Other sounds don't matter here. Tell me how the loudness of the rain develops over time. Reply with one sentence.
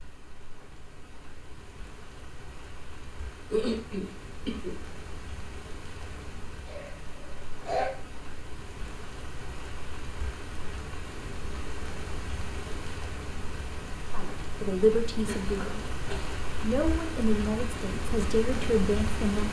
The loudness of the rain goes up.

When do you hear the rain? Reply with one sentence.
You can hear the rain from 0.0 to 19.4 s.